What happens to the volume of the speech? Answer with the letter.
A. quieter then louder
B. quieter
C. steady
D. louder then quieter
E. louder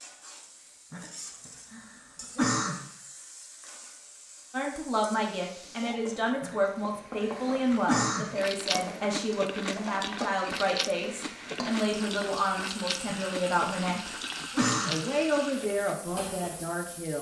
C.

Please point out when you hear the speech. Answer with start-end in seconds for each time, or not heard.
4.5-17.1.